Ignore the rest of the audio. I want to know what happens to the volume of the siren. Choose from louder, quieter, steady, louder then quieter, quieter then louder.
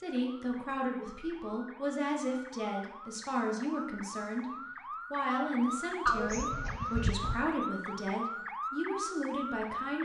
louder.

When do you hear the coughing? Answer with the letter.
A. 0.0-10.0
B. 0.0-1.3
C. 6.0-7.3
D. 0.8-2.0
C.